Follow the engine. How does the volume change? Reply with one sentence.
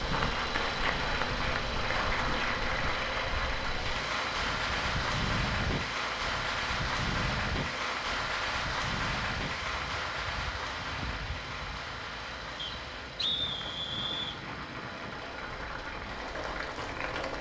The loudness of the engine goes down.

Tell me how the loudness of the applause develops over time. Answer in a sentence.
The volume of the applause goes down.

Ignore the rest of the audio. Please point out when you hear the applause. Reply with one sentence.
The applause can be heard from 0.0 to 17.3 s.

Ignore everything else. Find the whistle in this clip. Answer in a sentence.
You can hear the whistle from 12.6 to 14.4 s.